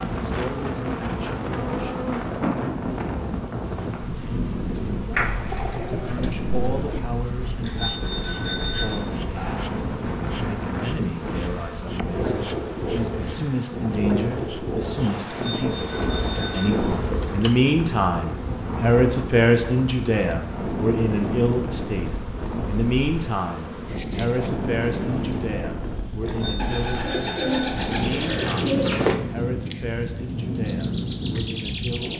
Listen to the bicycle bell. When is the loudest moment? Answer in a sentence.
The loudest moment of the bicycle bell is at 9 seconds.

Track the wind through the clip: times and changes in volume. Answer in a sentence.
You can hear the wind from 0.0 to 32.1 s, at a steady volume.